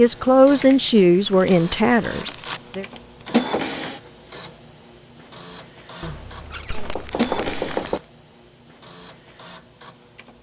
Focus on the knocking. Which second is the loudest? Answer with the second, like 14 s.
8 s.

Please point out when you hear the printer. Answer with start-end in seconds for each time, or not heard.
0.0-10.3.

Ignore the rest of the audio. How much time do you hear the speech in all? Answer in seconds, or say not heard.
3 s.